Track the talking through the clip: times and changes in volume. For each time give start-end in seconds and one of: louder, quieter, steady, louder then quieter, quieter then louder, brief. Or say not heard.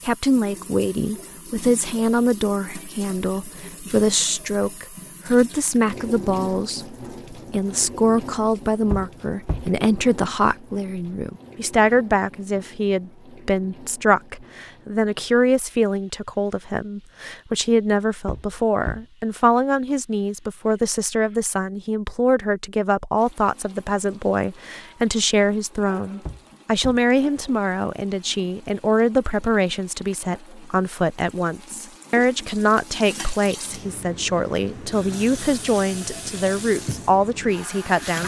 0.1-38.2 steady.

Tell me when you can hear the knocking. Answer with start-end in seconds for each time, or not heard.
8.9-9.7, 18.2-19.1, 26.2-27.1.